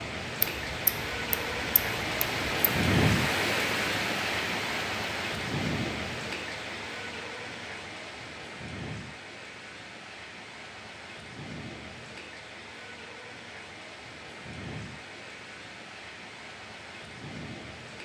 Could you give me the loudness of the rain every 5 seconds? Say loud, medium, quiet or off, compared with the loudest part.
loud, medium, quiet, quiet.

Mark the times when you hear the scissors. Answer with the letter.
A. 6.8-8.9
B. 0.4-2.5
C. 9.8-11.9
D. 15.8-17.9
B.